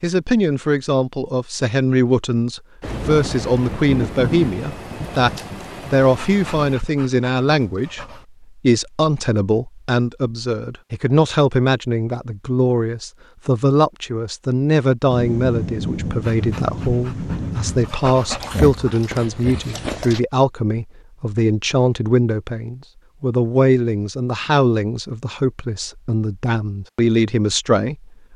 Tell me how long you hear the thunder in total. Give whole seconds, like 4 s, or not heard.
7 s.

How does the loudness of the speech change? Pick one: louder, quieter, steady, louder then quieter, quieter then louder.
steady.